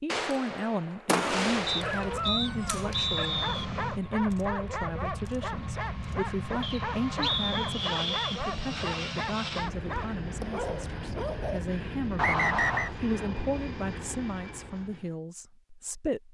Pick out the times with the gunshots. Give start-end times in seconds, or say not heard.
0.1-3.0.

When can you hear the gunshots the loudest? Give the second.
1 s.